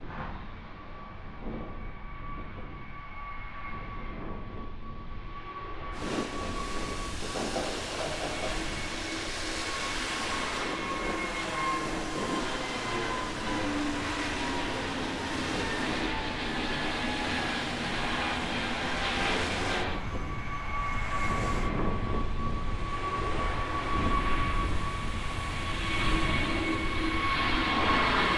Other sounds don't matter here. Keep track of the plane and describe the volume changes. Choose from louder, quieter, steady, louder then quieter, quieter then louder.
louder.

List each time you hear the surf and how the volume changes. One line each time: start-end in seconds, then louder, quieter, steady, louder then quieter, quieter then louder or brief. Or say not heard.
5.9-28.3 quieter.